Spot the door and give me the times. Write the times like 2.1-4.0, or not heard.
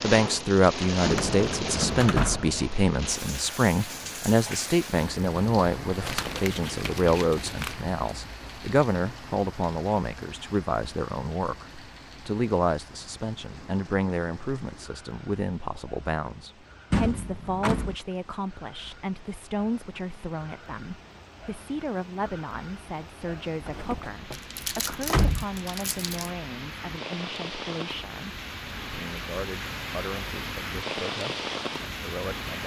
1.0-3.2, 16.9-17.9, 23.6-25.4.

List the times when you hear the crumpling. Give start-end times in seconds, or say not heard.
6.0-7.8, 24.3-26.3.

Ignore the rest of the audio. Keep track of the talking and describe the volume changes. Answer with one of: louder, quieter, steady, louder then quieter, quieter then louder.
quieter.